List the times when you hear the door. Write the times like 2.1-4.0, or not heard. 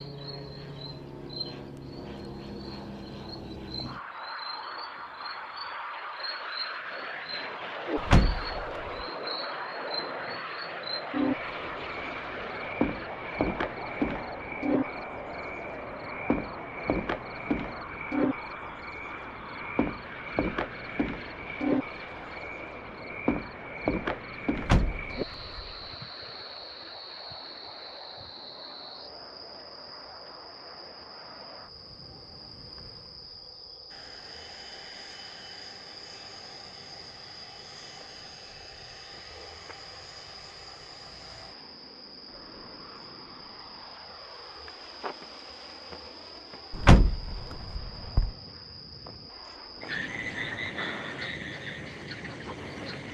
8.0-8.7, 24.6-25.7, 46.7-48.3.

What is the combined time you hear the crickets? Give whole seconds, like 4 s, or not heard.
53 s.